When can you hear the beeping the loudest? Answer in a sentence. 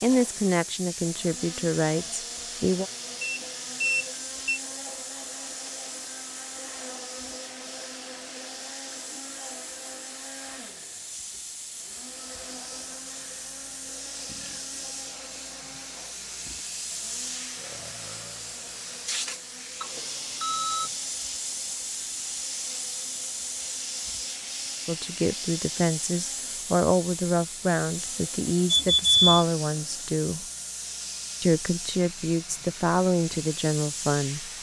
The volume of the beeping peaks at 29 seconds.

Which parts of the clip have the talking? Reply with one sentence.
You can hear the talking from 0.0 to 2.9 s, from 24.9 to 30.4 s and from 31.4 to 34.5 s.